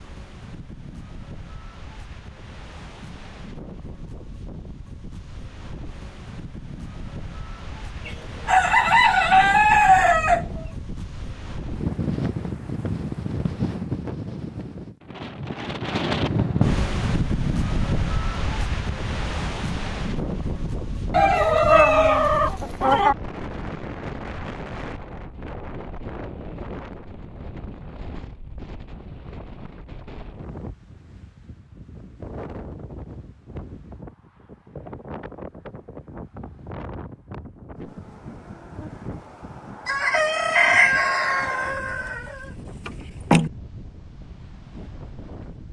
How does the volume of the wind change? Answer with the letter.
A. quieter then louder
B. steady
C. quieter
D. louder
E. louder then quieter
E.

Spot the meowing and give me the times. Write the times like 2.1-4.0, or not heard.
not heard.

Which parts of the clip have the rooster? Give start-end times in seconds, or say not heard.
8.1-10.7, 21.1-23.1, 39.9-43.5.